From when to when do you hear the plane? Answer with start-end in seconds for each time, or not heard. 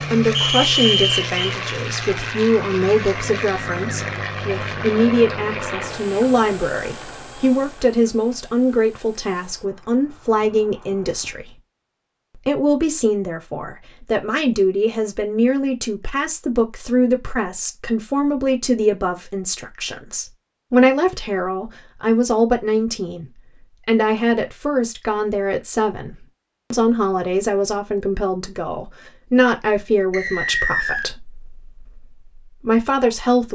0.0-11.4.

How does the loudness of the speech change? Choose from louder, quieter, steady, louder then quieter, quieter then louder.
steady.